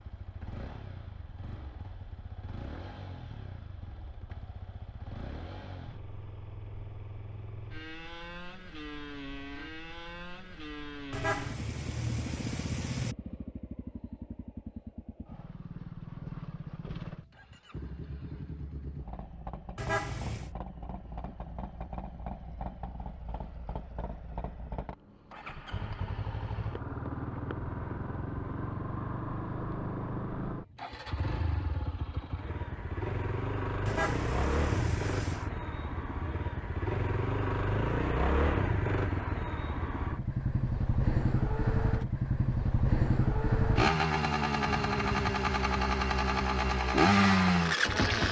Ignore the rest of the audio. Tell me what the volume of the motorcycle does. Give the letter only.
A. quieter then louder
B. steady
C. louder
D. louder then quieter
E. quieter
C.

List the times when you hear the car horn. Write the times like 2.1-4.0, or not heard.
11.1-13.2, 19.8-20.5, 33.9-35.5.